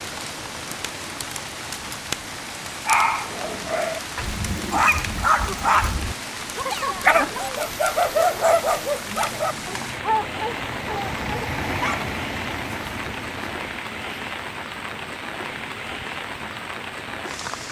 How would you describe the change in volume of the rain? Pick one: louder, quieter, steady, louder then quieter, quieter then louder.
steady.